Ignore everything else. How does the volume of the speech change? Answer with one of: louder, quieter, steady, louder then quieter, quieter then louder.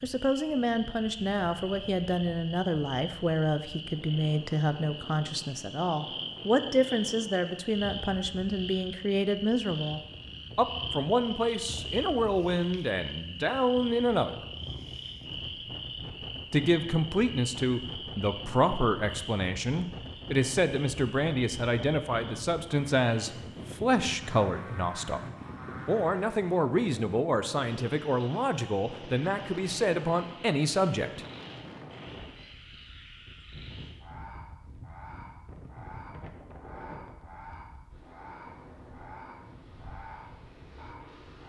steady.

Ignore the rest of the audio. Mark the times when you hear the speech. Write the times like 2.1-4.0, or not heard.
0.0-14.3, 16.5-25.2, 25.9-31.2.